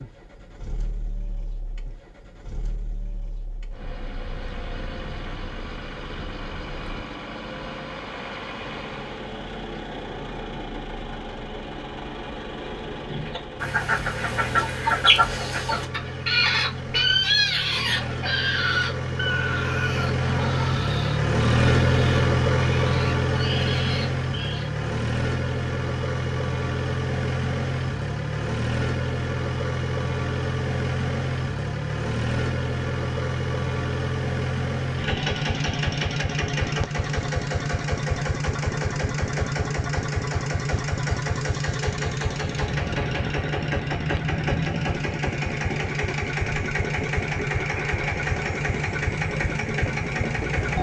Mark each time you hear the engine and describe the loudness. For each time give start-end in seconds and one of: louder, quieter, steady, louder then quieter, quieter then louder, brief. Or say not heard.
0.0-50.7 louder.